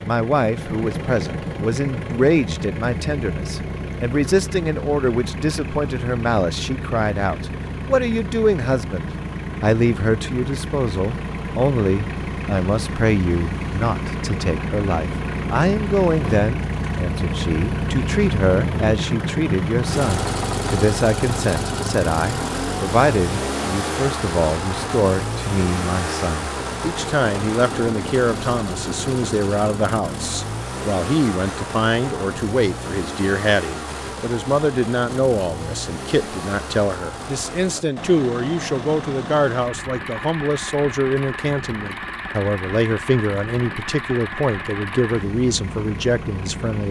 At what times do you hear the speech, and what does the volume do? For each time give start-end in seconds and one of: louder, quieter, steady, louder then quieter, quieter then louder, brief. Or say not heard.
0.0-46.8 steady.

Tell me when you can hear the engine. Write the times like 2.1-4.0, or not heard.
0.0-46.8.